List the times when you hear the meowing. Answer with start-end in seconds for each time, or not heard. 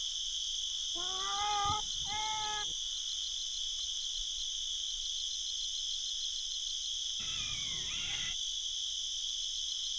0.9-2.8, 7.2-8.3.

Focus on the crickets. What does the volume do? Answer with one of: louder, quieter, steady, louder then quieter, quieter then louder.
steady.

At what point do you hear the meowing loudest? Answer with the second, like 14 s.
2 s.